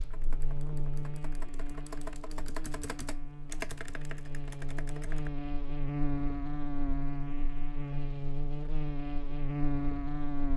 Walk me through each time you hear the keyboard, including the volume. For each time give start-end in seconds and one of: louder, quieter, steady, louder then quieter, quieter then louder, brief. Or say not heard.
0.0-5.3 louder then quieter.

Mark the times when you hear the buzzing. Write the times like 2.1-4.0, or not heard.
0.0-10.5.